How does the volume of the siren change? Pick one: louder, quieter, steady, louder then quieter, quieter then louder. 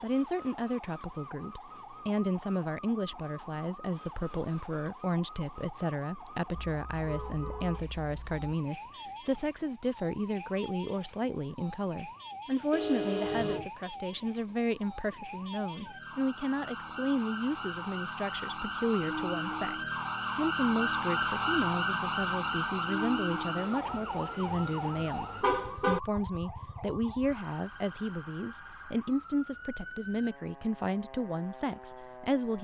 louder then quieter.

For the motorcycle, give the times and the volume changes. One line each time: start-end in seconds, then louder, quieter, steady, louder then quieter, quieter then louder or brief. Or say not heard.
not heard.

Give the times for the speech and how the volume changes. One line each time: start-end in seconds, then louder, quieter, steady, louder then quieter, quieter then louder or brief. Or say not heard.
0.0-32.5 steady.